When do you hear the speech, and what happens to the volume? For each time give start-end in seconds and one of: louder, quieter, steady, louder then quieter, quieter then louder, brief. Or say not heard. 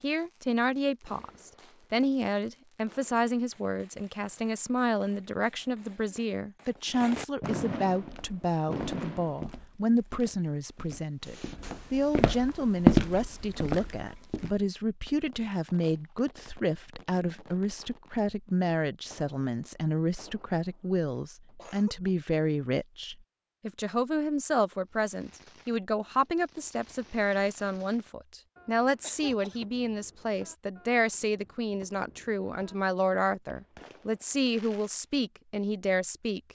0.0-36.5 steady.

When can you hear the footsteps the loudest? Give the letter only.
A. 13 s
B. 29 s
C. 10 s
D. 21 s
A.